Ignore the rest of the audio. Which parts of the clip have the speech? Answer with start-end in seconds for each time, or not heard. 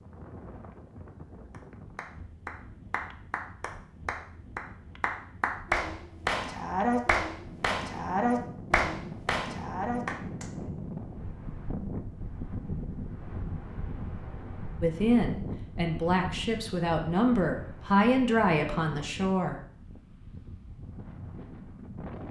14.8-19.6.